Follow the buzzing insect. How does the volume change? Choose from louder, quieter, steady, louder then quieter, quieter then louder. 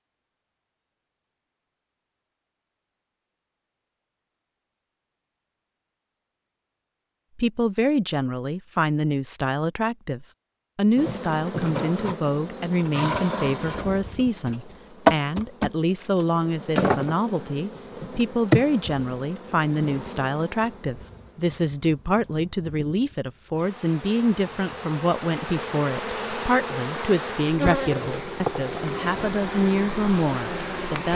quieter then louder.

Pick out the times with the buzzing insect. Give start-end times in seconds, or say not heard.
10.9-31.1.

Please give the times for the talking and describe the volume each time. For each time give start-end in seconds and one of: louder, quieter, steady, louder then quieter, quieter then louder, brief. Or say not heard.
7.3-31.1 steady.